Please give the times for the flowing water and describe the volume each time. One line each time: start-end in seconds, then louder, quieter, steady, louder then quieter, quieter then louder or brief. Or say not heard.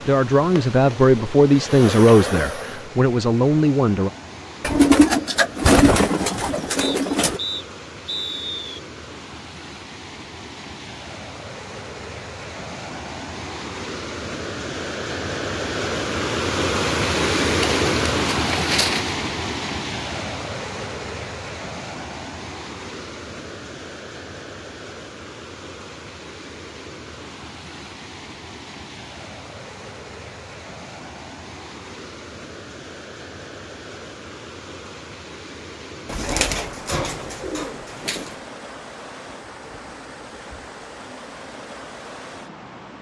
0.0-42.9 louder then quieter.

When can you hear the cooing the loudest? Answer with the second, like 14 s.
5 s.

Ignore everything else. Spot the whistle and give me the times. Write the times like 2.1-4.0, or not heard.
6.8-8.8.